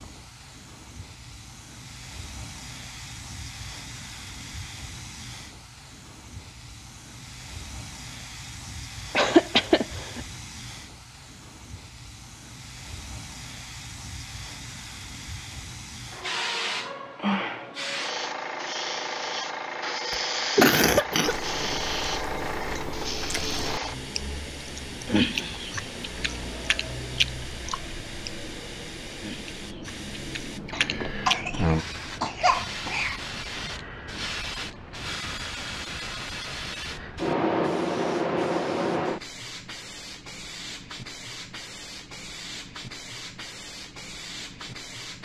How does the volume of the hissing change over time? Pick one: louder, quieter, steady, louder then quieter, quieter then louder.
louder.